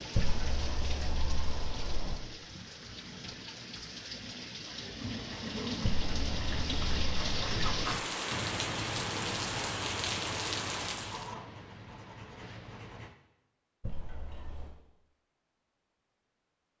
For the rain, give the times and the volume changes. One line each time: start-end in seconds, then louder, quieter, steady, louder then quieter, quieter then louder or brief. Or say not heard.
0.0-11.3 louder.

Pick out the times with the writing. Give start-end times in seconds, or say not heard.
5.0-13.2.